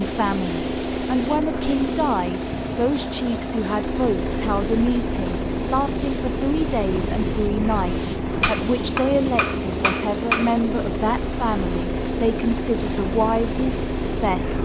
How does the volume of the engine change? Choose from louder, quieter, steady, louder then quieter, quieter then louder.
steady.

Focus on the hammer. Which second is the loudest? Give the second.
10 s.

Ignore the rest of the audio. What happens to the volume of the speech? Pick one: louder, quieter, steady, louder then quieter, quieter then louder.
steady.